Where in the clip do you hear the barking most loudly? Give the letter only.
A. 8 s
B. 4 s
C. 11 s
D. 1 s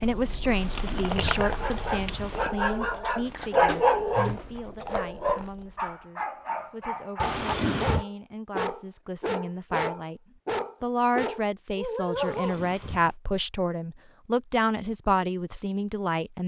B.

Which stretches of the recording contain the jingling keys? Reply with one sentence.
You can hear the jingling keys from 0.5 to 2.5 s, from 7.2 to 8.1 s and from 12.2 to 13.2 s.